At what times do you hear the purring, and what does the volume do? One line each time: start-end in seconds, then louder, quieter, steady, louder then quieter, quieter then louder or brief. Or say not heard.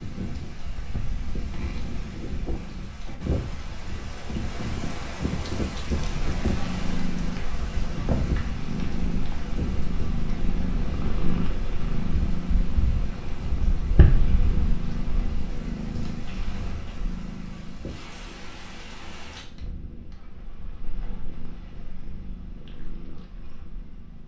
0.0-24.2 louder then quieter.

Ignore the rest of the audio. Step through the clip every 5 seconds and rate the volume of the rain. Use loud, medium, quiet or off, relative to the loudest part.
loud, loud, medium, medium, off.